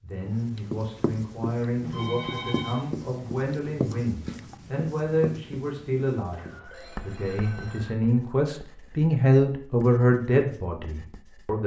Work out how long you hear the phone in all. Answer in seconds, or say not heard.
3 s.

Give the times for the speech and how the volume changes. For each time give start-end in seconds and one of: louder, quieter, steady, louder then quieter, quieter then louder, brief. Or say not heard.
0.0-11.6 louder.